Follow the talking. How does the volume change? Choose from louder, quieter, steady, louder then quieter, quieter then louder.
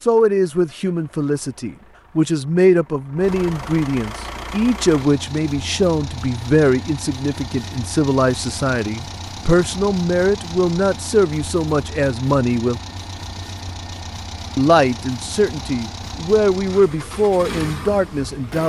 steady.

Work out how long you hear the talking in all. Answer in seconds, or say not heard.
17 s.